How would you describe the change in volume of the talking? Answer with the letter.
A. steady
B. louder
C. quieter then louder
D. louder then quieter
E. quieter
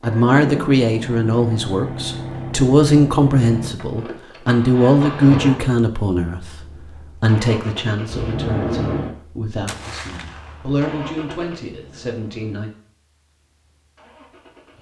E.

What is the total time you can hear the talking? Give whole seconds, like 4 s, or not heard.
13 s.